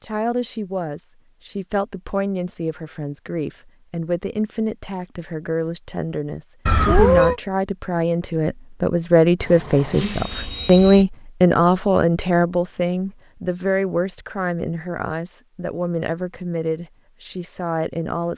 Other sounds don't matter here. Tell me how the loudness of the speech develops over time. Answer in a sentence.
The volume of the speech goes up, then down.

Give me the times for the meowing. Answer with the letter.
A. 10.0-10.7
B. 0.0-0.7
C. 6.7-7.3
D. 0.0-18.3
C.